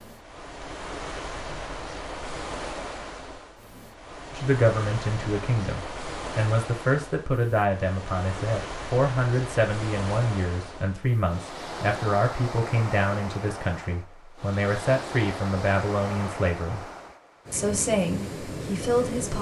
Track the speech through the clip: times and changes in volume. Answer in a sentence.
You can hear the speech from 4.3 to 16.9 s, at a steady volume; and briefly from 17.5 to 19.3 s.